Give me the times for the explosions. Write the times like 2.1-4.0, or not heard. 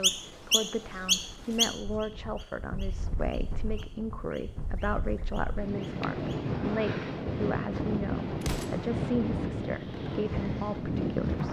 8.4-8.9.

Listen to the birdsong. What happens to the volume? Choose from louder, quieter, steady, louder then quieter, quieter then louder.
quieter.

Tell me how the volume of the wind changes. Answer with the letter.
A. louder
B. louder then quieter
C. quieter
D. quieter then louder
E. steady
A.